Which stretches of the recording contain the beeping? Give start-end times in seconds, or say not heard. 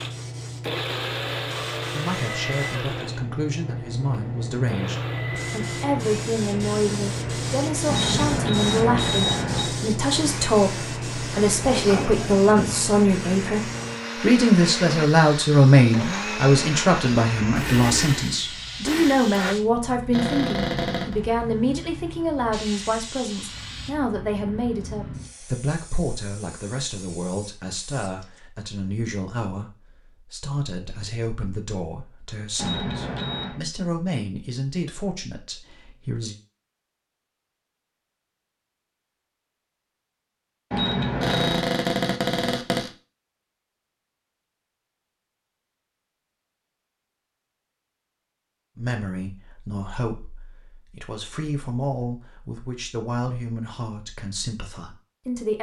7.8-9.7, 32.5-33.6, 40.7-41.6.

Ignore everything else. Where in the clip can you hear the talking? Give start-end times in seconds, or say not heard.
1.9-13.6, 14.2-36.4, 48.8-55.5.